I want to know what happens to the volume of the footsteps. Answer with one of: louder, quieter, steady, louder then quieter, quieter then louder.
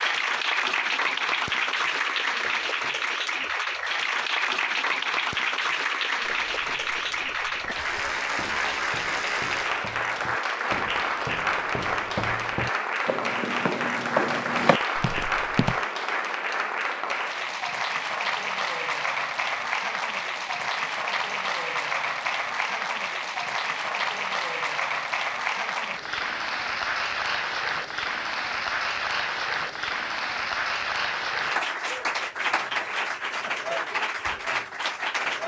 louder.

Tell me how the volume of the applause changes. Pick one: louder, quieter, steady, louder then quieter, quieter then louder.
steady.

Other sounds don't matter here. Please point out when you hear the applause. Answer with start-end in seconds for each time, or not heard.
0.0-35.4.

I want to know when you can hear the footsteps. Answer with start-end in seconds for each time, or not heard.
6.2-15.8.